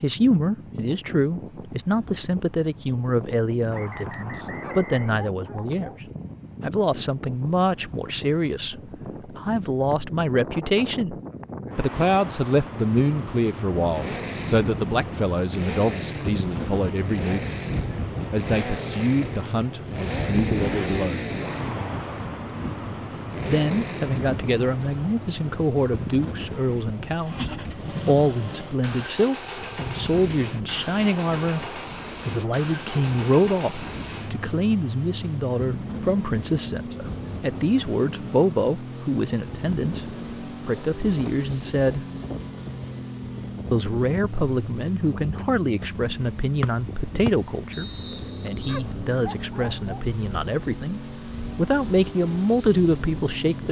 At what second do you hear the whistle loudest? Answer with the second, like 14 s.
47 s.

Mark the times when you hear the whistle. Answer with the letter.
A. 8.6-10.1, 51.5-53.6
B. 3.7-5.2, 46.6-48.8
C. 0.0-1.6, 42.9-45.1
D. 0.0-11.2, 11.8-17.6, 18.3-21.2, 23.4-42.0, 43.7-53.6
B.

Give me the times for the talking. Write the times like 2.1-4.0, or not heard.
0.0-11.2, 11.8-17.6, 18.3-21.2, 23.4-42.0, 43.7-53.6.